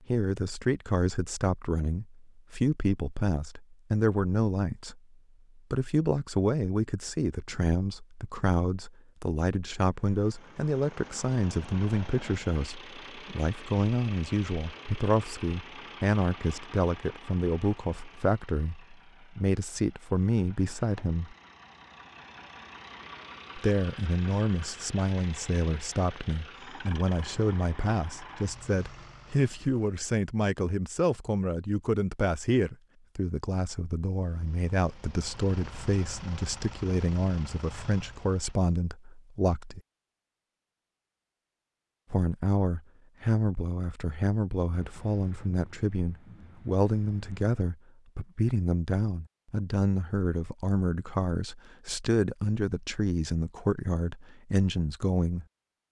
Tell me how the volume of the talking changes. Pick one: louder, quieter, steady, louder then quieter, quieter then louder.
steady.